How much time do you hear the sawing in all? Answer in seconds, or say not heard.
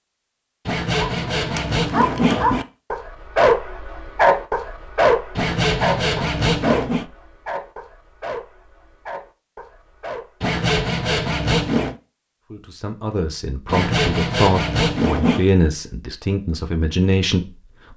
7 s.